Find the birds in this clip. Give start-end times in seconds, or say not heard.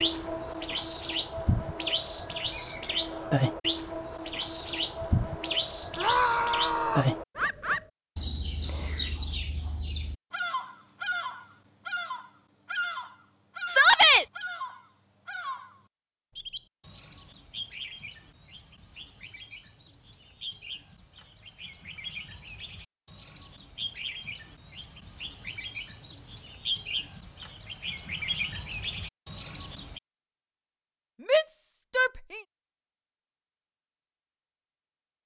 0.0-30.0.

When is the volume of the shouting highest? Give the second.
14 s.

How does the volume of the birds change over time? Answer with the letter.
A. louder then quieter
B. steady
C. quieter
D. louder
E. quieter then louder
E.